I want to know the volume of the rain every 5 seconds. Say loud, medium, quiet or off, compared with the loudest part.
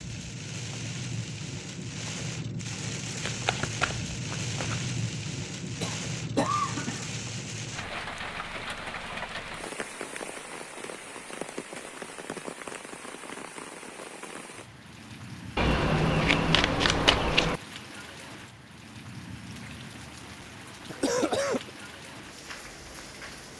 loud, loud, medium, medium, medium.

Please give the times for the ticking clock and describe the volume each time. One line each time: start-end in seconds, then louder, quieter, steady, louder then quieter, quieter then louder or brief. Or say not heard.
not heard.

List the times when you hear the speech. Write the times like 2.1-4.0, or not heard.
not heard.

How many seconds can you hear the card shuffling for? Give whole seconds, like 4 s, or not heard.
4 s.